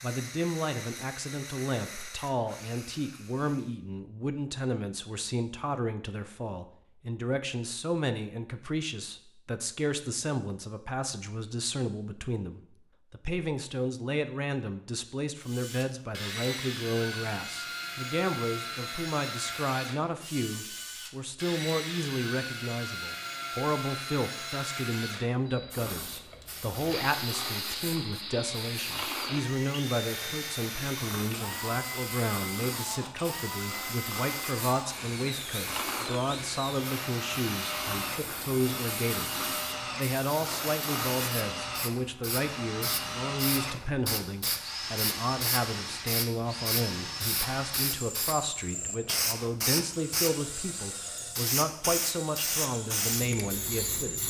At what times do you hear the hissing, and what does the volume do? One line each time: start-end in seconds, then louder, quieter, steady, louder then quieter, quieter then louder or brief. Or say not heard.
25.7-54.2 louder.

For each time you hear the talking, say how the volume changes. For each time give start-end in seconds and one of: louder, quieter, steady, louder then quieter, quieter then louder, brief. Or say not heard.
0.0-54.2 steady.